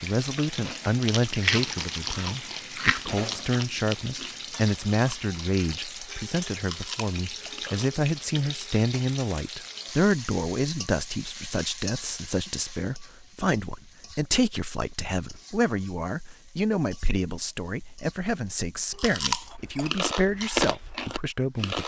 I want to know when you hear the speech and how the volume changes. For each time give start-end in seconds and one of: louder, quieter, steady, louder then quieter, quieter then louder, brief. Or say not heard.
0.0-21.8 steady.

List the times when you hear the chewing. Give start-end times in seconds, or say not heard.
0.3-8.0, 18.9-21.8.